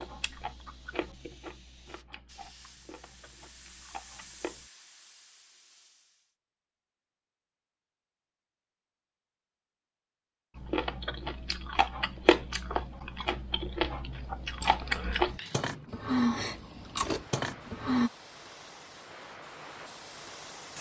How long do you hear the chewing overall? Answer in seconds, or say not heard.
12 s.